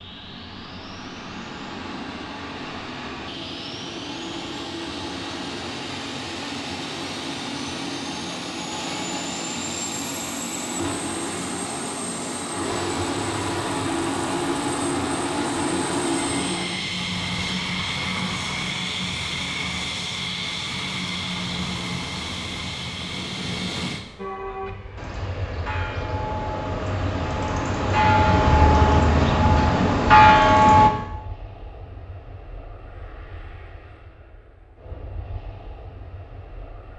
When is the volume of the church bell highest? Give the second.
30 s.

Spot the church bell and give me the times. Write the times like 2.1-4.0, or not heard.
24.1-30.9.